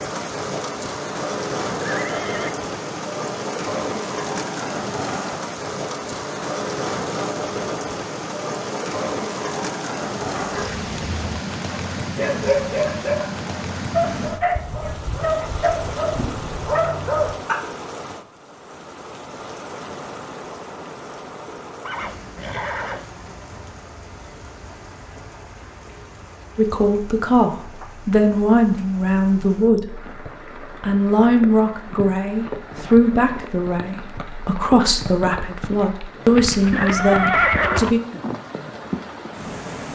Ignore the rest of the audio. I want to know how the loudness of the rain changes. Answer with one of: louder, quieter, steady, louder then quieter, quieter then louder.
quieter then louder.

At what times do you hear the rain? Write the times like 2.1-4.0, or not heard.
0.0-39.8.